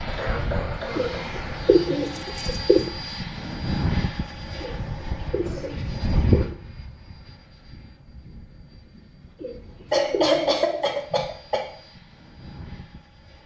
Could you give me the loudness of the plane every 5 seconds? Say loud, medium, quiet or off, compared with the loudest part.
loud, loud, quiet.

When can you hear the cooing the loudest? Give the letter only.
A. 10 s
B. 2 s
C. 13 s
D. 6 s
B.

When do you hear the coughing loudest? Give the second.
10 s.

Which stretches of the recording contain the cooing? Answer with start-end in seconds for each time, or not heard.
0.9-2.9, 4.6-6.5, 9.4-11.0.